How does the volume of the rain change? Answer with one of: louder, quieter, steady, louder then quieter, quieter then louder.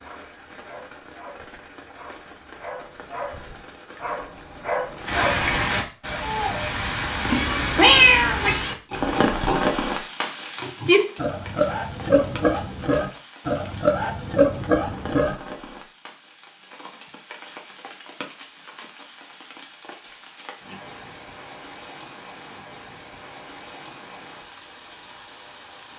louder then quieter.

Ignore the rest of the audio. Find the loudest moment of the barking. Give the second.
5 s.